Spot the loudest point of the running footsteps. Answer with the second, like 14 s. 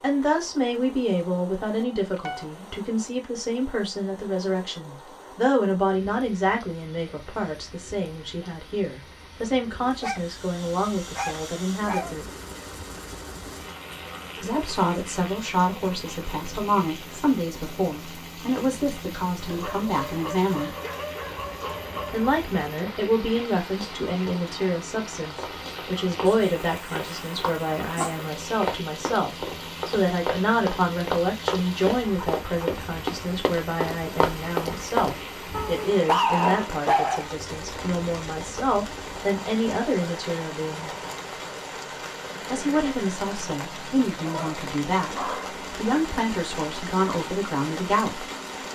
35 s.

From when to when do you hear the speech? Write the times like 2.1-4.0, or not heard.
0.0-12.2, 14.4-20.8, 22.1-40.9, 42.5-48.7.